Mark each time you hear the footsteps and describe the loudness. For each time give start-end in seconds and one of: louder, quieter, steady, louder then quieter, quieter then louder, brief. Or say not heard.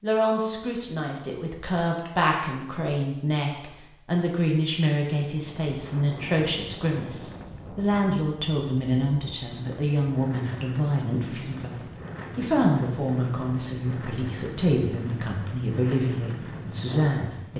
not heard.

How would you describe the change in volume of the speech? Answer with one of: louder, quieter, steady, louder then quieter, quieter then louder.
steady.